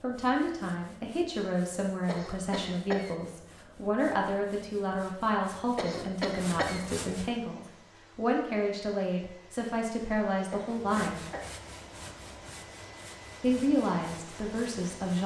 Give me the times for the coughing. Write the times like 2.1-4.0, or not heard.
2.0-3.1, 5.8-6.8, 10.5-11.6.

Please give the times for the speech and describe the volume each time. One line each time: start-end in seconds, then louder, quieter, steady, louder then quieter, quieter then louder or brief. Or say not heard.
0.0-11.2 steady
13.4-15.2 brief.